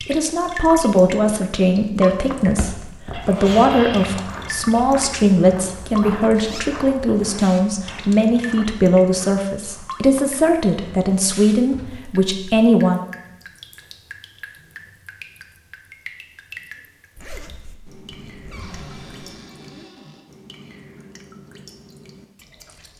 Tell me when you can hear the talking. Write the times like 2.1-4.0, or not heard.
0.1-13.0.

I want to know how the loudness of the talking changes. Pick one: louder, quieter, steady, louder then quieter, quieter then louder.
steady.